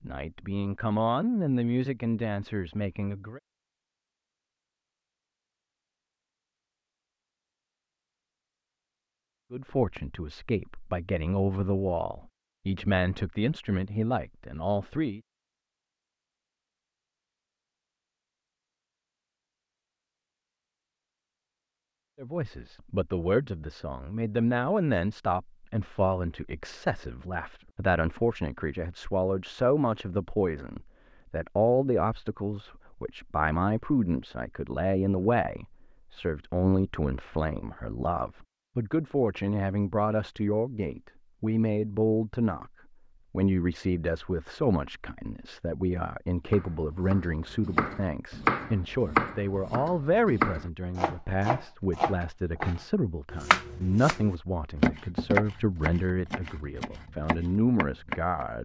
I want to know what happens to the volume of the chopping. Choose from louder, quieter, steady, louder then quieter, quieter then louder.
quieter.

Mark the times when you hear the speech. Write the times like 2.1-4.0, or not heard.
0.0-3.4, 9.5-15.2, 22.2-42.7, 43.3-58.6.